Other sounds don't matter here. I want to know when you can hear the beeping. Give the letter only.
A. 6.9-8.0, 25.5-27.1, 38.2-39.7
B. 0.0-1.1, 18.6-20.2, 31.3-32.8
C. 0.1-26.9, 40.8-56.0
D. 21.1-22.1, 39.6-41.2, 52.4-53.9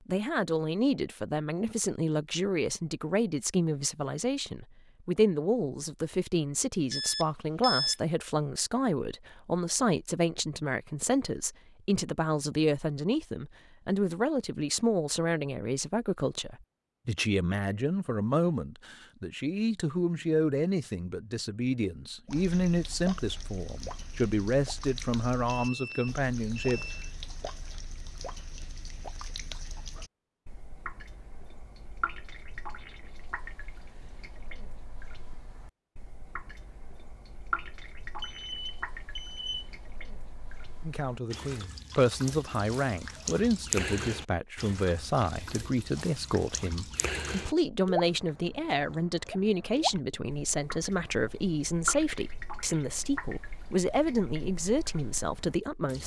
A.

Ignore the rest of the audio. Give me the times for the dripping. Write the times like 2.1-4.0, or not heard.
22.2-56.0.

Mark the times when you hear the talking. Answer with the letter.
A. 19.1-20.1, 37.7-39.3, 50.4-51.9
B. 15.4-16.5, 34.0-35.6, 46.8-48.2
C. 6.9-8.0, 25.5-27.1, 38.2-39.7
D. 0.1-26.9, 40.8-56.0
D.